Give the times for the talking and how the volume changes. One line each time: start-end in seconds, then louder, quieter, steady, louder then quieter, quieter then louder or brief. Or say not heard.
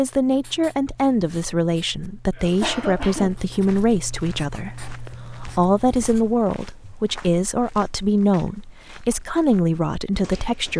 0.0-10.7 steady.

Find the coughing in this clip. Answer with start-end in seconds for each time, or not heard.
2.4-3.4.